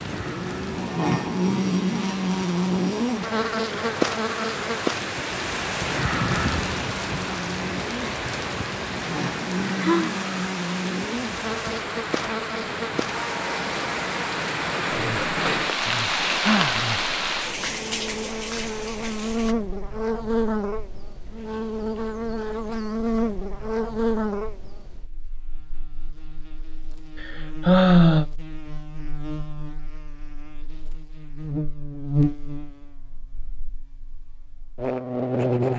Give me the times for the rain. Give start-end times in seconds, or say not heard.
0.0-19.6.